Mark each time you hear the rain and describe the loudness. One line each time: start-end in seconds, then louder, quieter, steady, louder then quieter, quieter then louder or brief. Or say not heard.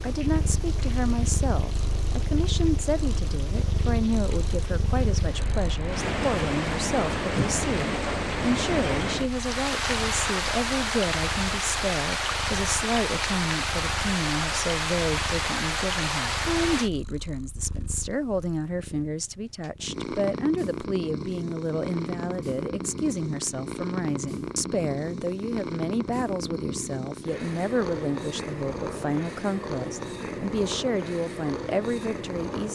0.0-16.9 louder.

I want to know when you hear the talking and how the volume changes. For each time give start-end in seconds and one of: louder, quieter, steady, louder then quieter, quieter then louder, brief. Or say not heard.
0.0-32.7 steady.